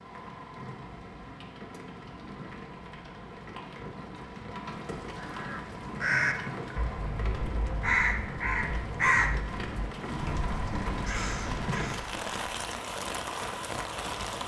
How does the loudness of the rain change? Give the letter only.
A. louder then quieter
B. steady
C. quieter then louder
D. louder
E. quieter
D.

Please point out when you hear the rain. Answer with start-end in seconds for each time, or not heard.
0.0-14.4.